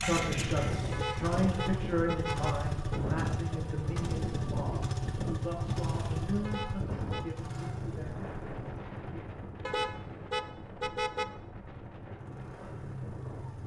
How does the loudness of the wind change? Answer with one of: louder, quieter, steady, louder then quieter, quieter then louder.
quieter.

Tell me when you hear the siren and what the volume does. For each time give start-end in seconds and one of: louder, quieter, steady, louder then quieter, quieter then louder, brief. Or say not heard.
not heard.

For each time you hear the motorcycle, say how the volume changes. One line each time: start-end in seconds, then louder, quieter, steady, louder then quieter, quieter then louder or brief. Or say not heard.
0.0-13.6 quieter.